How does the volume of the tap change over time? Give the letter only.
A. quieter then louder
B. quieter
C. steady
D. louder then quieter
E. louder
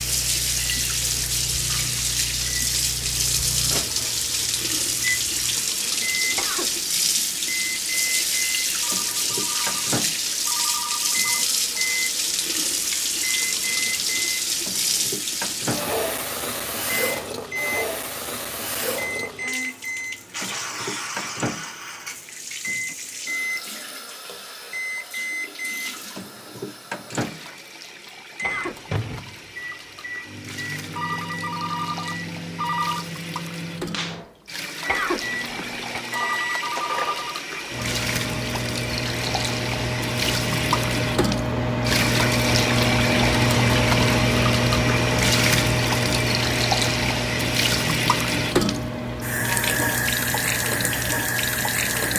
A.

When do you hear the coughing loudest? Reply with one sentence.
The loudest moment of the coughing is at 35 seconds.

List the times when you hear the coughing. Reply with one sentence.
You can hear the coughing from 6.3 to 6.8 s, from 28.4 to 29.1 s and from 34.9 to 36.0 s.